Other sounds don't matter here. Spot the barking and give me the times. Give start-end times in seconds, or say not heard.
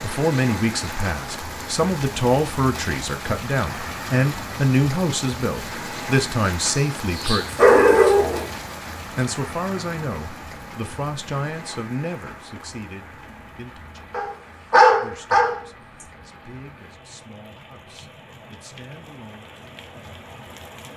6.8-8.5, 14.1-15.6.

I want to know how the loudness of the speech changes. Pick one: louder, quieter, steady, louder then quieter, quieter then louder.
quieter.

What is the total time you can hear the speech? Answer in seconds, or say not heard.
17 s.